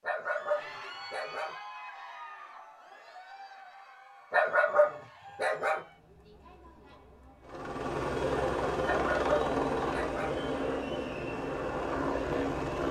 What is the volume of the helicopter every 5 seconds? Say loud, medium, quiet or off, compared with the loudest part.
off, loud, loud.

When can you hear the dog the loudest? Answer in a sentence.
The volume of the dog peaks at 5 seconds.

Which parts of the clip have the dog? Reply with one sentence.
The dog can be heard from 0.0 to 1.6 s, from 4.3 to 5.8 s and from 8.8 to 10.3 s.